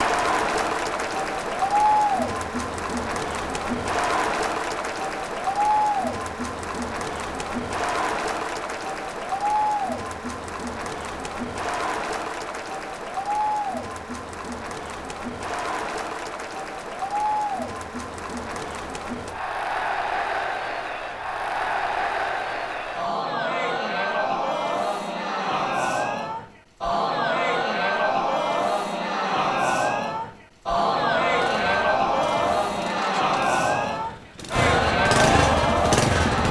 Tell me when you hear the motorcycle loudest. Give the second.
36 s.